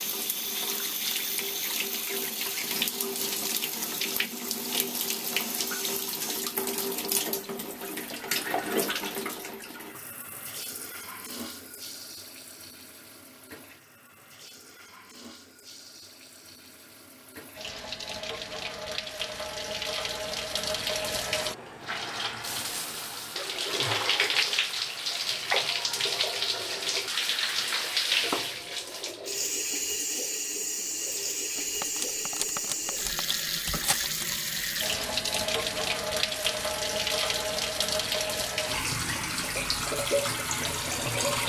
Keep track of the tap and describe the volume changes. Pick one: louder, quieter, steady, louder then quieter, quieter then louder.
quieter then louder.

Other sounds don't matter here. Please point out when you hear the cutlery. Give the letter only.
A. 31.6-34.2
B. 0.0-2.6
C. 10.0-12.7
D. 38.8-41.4
A.